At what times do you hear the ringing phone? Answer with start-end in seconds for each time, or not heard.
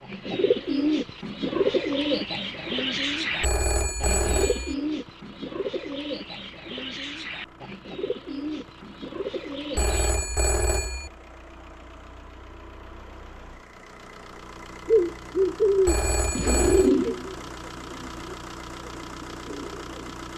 3.4-4.8, 9.8-11.1, 15.8-16.9.